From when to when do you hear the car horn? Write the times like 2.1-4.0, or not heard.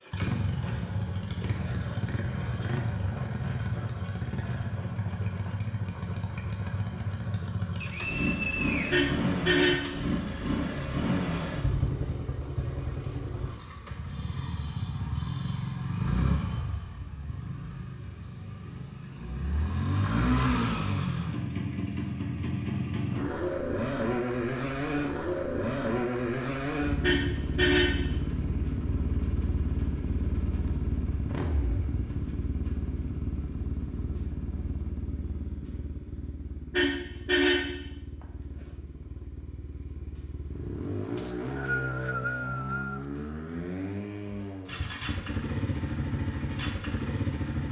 8.9-9.9, 27.0-28.1, 36.7-37.8.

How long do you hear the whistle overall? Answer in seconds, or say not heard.
3 s.